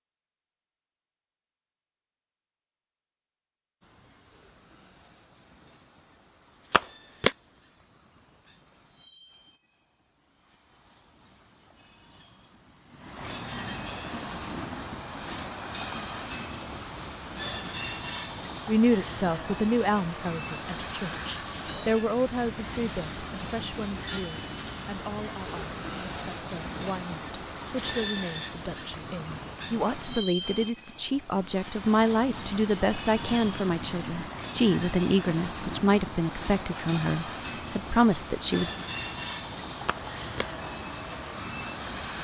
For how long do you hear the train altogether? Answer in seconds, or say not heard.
38 s.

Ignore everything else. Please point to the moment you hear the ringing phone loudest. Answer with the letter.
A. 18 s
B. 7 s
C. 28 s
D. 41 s
B.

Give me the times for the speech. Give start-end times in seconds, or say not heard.
18.6-38.8.